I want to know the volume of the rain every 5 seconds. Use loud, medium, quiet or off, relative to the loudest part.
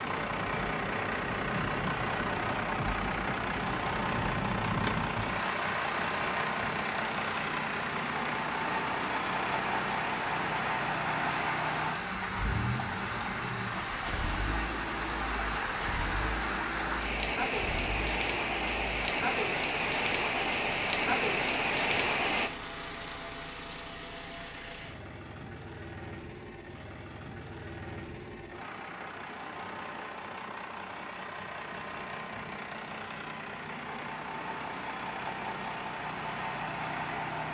medium, medium, medium, loud, loud, off, off, off.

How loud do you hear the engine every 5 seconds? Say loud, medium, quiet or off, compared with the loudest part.
loud, loud, loud, medium, medium, medium, medium, loud.